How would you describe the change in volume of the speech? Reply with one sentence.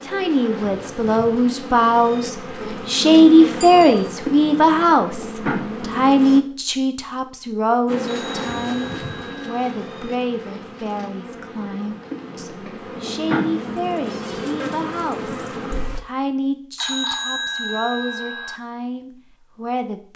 The loudness of the speech goes down.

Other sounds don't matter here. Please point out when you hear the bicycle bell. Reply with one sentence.
You can hear the bicycle bell from 3.6 to 4.0 s, from 8.1 to 9.8 s and from 16.8 to 18.6 s.